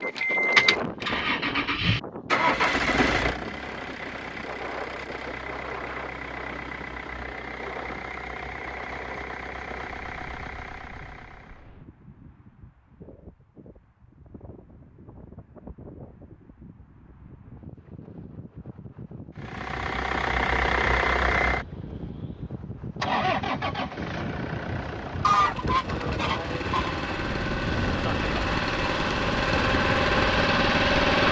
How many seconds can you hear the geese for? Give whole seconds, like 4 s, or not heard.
2 s.